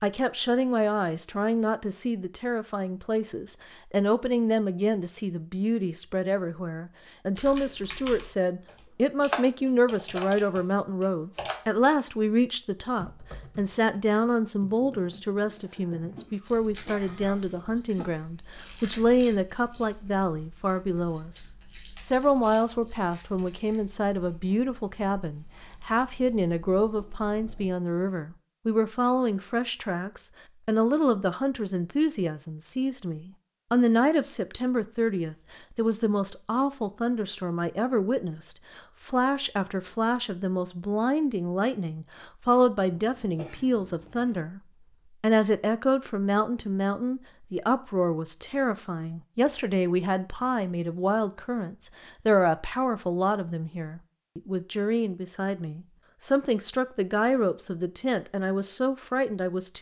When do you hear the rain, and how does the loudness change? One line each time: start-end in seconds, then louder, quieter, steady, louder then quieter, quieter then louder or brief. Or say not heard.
not heard.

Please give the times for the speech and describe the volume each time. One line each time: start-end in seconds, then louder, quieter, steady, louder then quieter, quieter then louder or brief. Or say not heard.
0.0-44.6 steady
45.2-59.7 steady.